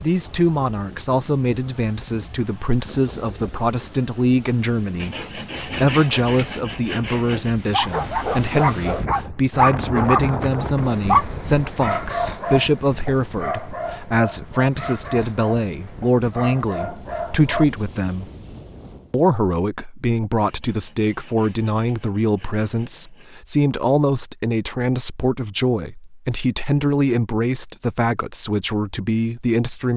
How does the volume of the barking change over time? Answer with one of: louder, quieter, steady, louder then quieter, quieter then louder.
quieter.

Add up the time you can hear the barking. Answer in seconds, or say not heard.
10 s.